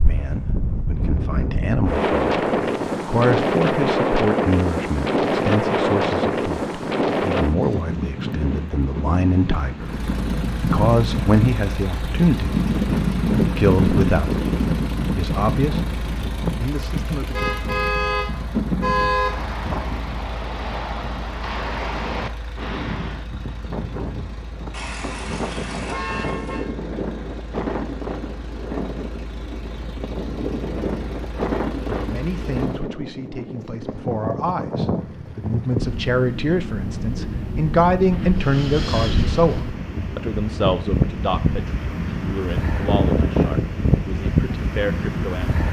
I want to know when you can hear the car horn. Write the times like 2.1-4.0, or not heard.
17.3-19.3, 24.7-26.7.